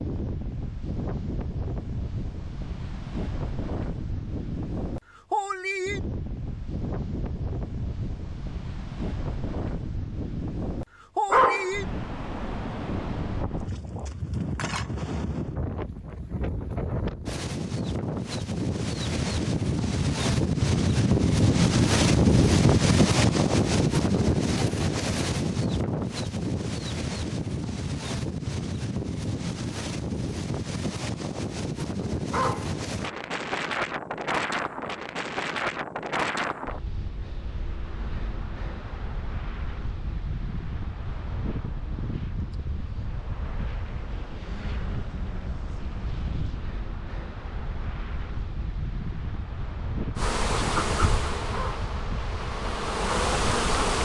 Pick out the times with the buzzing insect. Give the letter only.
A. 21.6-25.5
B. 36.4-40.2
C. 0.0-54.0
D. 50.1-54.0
D.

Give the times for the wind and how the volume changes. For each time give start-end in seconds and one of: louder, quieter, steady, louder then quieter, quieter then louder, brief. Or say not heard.
0.0-54.0 louder then quieter.